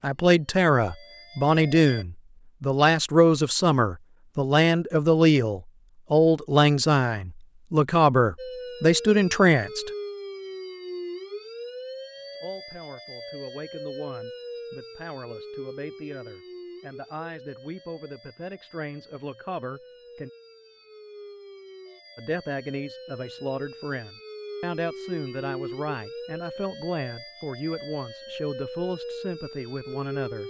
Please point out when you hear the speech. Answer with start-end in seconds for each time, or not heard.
0.0-9.9, 12.3-20.3, 22.1-30.4.